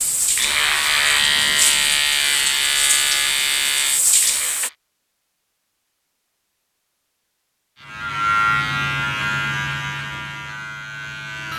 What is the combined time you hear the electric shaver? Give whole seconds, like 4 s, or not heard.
8 s.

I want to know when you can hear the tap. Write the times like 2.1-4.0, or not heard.
0.0-4.7.